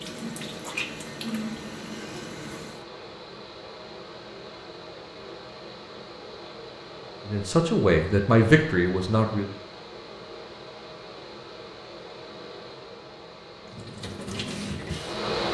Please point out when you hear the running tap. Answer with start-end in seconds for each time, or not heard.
0.0-2.9, 13.7-15.2.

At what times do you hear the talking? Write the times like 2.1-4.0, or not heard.
7.2-9.5.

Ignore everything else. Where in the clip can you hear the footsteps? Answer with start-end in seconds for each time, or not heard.
not heard.